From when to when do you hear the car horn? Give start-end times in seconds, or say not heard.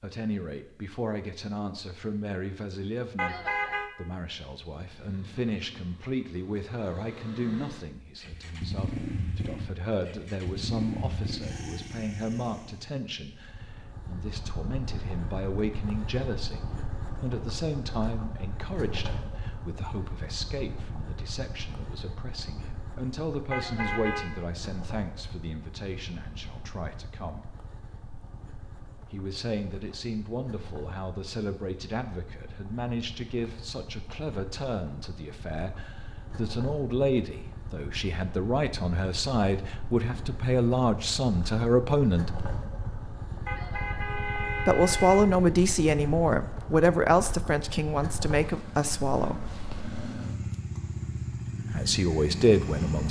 3.1-3.9, 23.5-24.3, 43.5-45.2.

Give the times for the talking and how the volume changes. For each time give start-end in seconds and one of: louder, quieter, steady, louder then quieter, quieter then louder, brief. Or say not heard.
0.0-27.4 steady
29.1-42.4 louder
44.6-49.5 quieter
51.7-53.0 brief.